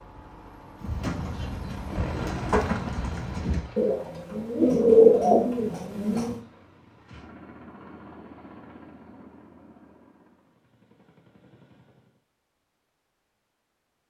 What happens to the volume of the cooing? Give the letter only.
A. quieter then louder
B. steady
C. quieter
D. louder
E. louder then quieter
D.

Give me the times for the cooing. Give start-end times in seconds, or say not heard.
0.8-6.3.